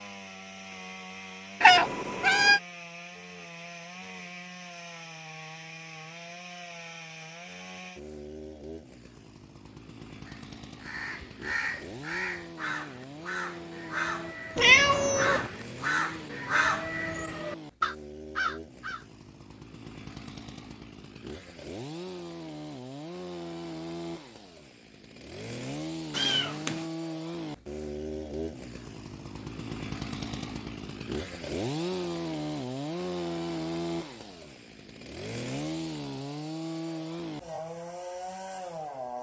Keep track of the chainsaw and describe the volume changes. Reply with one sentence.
The volume of the chainsaw goes up.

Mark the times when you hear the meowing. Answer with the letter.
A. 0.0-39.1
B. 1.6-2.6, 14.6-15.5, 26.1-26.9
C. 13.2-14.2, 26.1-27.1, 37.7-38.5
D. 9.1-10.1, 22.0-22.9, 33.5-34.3
B.